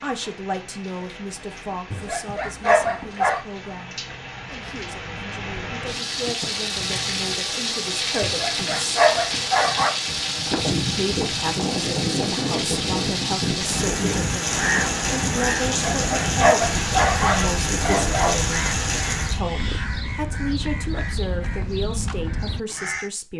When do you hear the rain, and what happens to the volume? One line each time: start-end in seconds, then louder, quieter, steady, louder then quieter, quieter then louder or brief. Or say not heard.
0.0-19.4 louder.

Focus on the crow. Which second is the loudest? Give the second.
15 s.